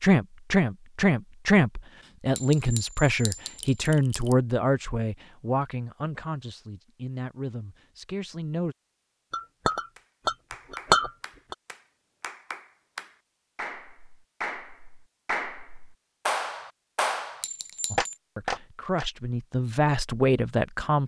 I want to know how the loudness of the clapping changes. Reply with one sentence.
The volume of the clapping goes up.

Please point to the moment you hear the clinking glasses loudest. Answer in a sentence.
The volume of the clinking glasses peaks at 11 seconds.